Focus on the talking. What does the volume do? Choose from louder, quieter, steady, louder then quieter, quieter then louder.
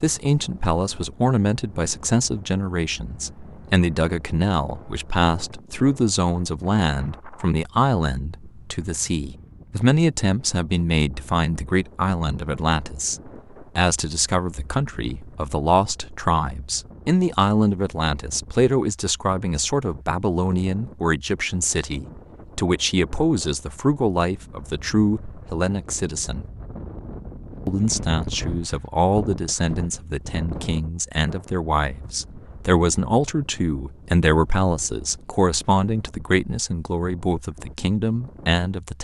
steady.